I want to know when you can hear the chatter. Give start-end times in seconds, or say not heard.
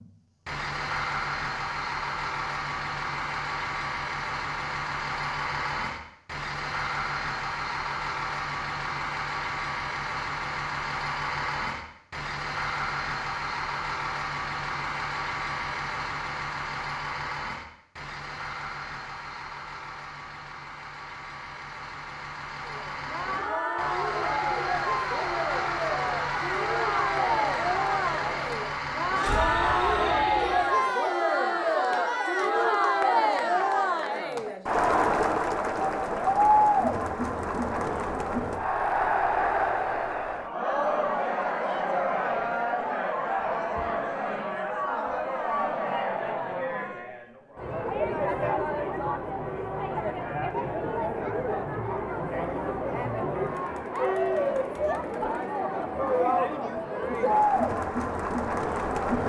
22.6-59.2.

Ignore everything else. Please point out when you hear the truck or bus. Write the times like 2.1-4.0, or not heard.
0.0-30.8.